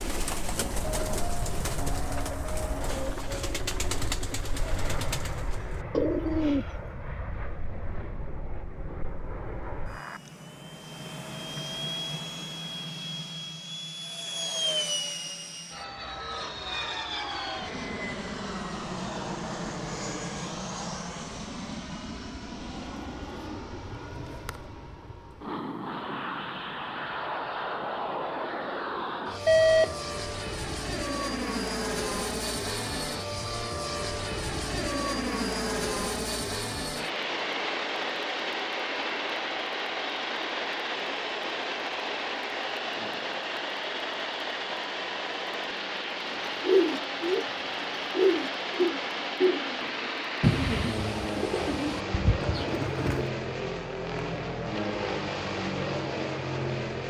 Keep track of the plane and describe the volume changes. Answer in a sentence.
The loudness of the plane goes up.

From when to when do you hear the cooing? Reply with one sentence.
The cooing can be heard from 0.0 to 6.8 s and from 46.3 to 53.3 s.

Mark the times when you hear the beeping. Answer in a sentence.
You can hear the beeping from 29.4 to 29.9 s.